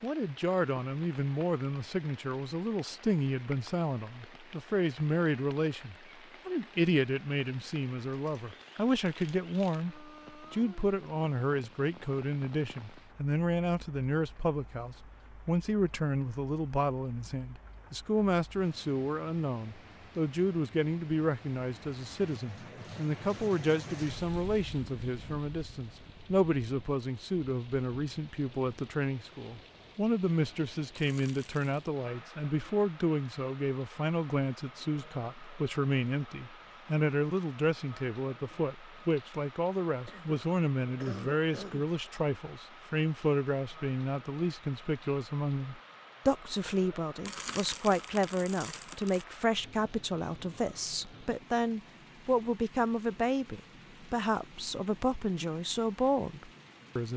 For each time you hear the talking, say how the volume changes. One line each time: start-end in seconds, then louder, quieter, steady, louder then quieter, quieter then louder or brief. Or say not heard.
0.0-57.1 steady.